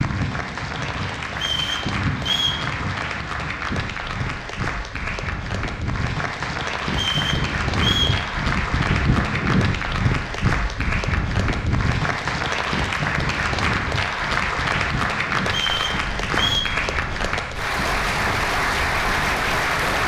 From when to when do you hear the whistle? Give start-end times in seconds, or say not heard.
1.3-2.6, 6.9-8.2, 15.4-16.6.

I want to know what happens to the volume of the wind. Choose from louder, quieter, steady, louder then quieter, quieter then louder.
louder then quieter.